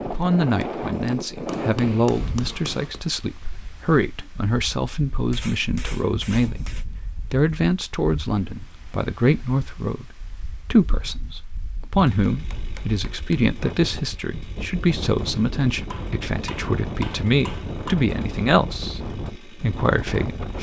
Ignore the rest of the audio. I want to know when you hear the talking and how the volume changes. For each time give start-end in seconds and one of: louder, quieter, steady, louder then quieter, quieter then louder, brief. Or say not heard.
0.1-20.5 steady.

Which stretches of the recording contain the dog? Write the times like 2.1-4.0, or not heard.
not heard.